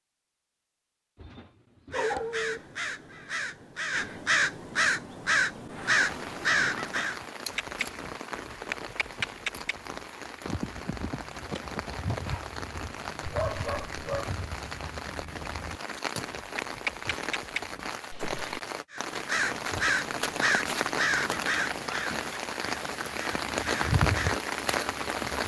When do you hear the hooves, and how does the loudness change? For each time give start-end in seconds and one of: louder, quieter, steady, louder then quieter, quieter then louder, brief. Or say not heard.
7.5-18.6 quieter then louder.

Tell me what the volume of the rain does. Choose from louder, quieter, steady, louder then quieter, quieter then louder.
louder.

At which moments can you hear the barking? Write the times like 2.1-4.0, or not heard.
1.1-2.6, 13.2-14.3.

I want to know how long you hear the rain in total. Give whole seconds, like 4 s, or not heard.
20 s.